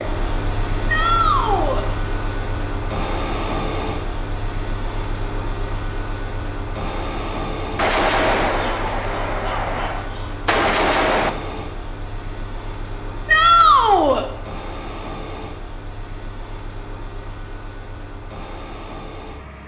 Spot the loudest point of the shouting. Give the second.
14 s.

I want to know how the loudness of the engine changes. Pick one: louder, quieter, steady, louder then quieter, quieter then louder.
quieter.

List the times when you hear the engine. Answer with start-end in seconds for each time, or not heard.
0.0-19.6.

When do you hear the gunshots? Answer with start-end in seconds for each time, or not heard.
7.8-11.3.